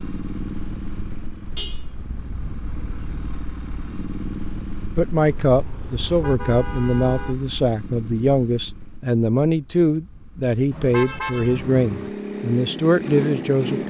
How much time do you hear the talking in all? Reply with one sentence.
The talking can be heard for 9 seconds in total.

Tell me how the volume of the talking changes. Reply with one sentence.
The volume of the talking stays about the same.